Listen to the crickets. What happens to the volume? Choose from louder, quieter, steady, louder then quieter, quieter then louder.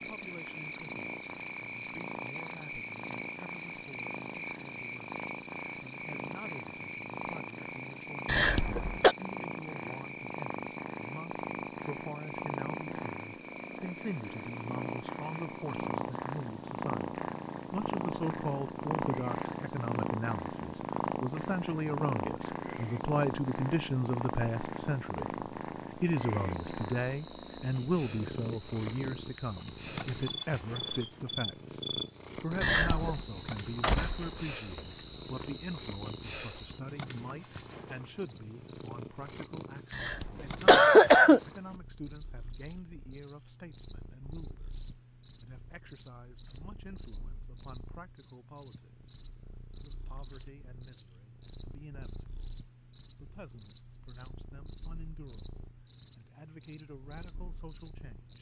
quieter then louder.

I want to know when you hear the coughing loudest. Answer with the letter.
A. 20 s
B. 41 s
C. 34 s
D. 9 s
B.